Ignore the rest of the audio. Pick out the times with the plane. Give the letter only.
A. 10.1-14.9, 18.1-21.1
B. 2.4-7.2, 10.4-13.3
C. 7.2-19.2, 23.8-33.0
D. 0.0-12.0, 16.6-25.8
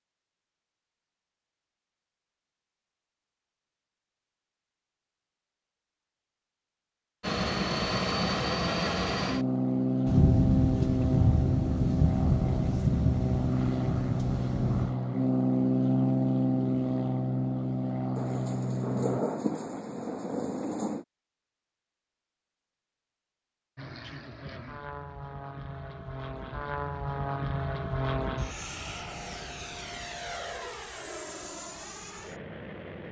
C.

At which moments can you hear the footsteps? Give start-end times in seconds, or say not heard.
not heard.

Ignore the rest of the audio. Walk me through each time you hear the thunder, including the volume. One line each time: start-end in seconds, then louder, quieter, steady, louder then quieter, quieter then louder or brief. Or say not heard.
10.1-14.9 quieter
18.1-21.1 brief.